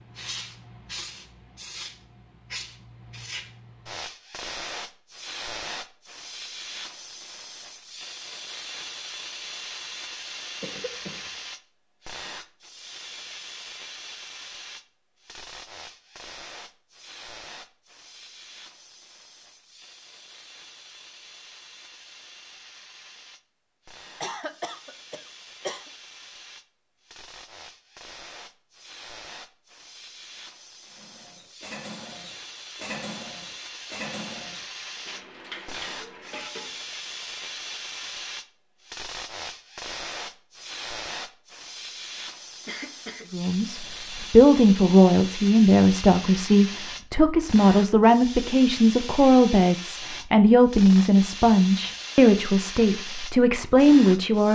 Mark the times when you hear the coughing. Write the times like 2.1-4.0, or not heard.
10.6-11.3, 24.2-25.9, 42.6-43.2.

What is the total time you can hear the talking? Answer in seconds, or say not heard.
11 s.